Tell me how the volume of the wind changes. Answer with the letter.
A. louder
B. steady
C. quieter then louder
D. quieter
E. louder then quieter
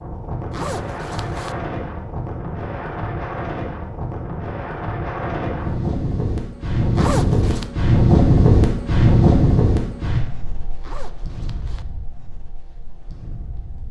E.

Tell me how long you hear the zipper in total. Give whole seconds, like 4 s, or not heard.
3 s.